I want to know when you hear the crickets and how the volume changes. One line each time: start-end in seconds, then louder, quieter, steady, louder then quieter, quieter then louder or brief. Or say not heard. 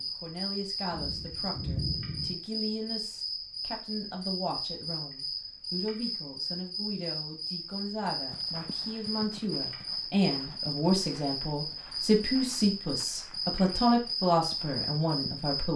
0.0-15.7 steady.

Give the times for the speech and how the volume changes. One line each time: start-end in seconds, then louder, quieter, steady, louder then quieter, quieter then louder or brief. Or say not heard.
0.0-15.7 louder.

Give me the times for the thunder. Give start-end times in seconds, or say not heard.
0.9-2.4.